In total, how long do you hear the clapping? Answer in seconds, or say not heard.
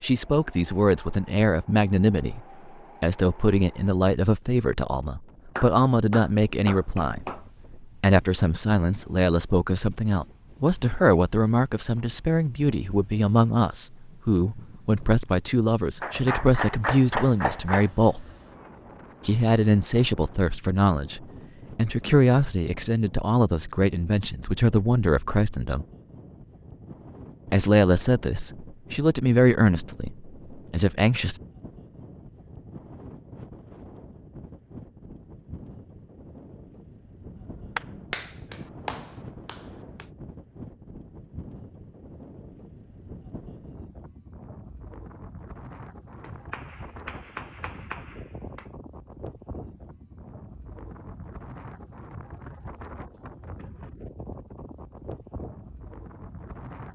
9 s.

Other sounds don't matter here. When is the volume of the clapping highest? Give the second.
17 s.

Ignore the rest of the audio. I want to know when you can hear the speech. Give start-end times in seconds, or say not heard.
0.0-2.4, 3.0-7.3, 8.0-18.2, 19.2-25.9, 27.5-31.4.